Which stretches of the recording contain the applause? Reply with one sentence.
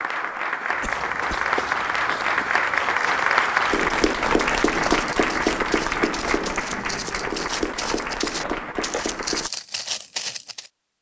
You can hear the applause from 0.0 to 9.5 s.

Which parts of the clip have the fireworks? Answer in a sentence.
The fireworks can't be heard in this clip.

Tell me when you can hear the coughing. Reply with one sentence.
The coughing can be heard from 0.8 to 1.5 s and from 8.4 to 9.1 s.